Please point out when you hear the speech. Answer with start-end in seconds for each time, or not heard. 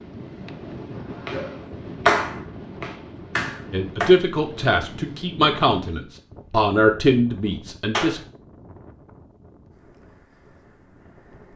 3.7-8.2.